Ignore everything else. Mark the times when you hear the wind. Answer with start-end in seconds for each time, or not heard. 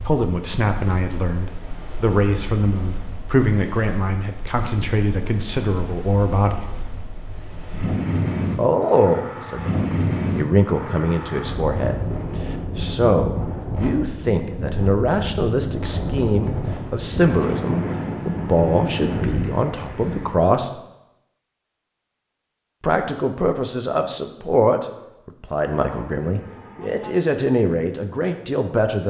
0.0-20.4.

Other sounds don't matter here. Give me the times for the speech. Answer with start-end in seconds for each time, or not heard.
0.0-6.7, 8.6-20.7, 22.8-29.0.